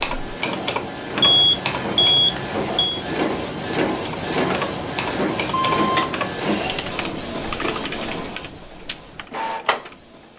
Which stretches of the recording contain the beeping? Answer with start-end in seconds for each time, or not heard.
1.2-3.0, 5.5-6.2.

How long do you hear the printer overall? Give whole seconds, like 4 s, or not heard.
10 s.